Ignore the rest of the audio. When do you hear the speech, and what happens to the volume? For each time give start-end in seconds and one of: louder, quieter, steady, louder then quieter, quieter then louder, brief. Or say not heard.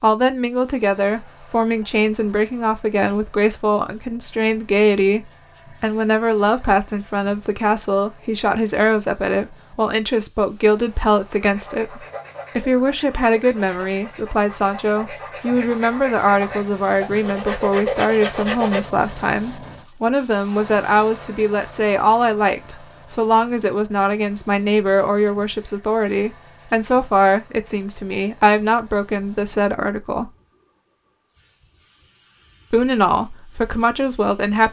0.0-30.3 steady
32.7-34.6 brief.